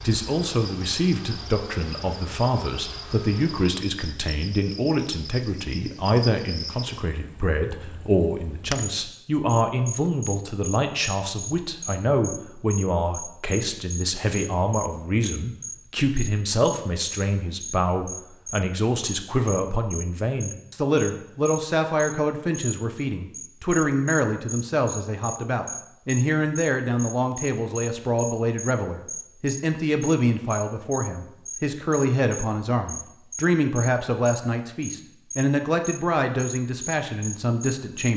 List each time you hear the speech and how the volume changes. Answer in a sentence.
The speech can be heard from 0.0 to 38.1 s, at a steady volume.